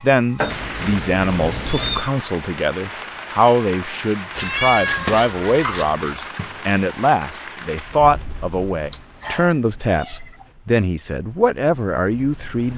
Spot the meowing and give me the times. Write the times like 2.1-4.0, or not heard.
0.3-2.1, 4.3-6.2, 8.9-10.4.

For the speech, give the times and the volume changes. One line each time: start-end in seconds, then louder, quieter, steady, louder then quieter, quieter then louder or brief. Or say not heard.
0.0-12.7 steady.